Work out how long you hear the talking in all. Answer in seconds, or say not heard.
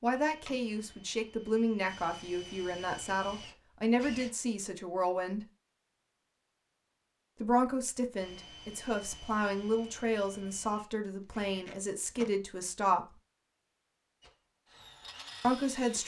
12 s.